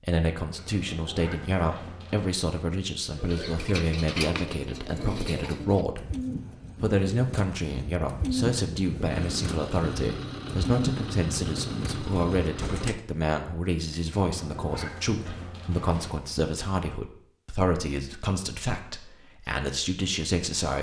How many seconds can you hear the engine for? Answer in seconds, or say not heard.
4 s.